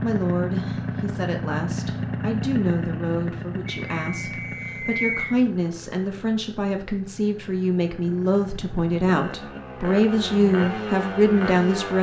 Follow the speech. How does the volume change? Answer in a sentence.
The volume of the speech goes up.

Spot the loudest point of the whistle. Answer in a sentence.
The volume of the whistle peaks at 5 seconds.